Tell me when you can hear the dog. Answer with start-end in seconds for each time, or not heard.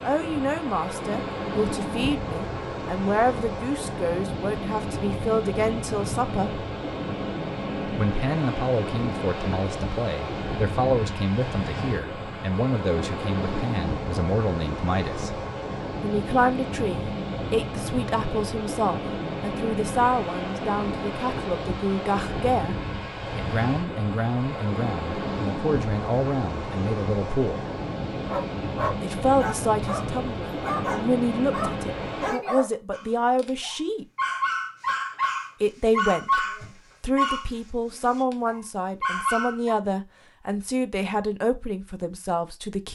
28.2-39.8.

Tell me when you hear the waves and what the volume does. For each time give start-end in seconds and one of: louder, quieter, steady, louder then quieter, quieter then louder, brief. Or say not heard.
0.0-32.4 steady.